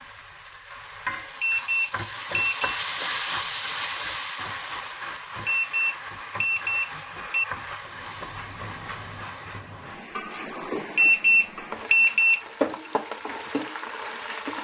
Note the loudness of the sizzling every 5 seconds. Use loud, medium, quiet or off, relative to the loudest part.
loud, medium, loud.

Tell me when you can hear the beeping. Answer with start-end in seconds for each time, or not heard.
1.4-2.8, 5.5-7.5, 10.9-12.9.